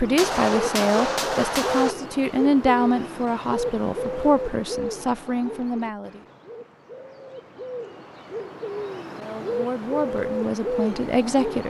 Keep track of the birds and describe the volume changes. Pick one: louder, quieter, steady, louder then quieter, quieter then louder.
quieter then louder.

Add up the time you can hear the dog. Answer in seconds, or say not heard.
not heard.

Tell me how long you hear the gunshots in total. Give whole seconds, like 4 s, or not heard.
2 s.